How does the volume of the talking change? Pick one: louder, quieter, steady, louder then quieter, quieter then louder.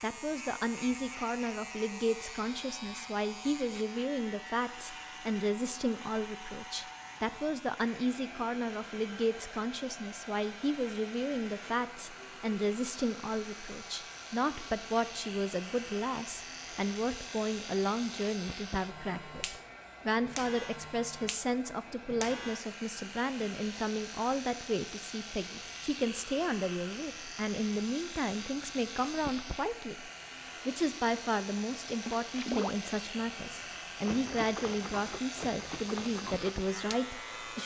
steady.